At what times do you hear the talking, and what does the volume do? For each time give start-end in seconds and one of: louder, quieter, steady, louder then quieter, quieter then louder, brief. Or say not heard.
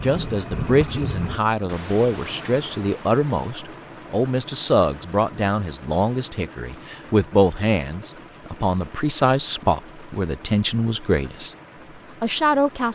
0.0-11.5 steady
12.2-12.9 brief.